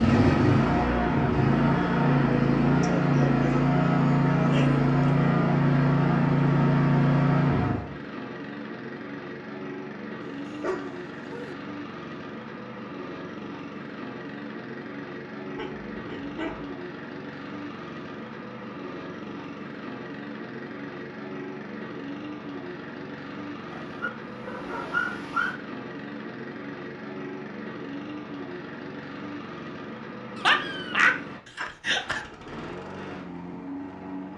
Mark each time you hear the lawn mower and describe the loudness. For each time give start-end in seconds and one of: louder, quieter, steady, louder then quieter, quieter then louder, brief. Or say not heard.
0.0-34.3 quieter.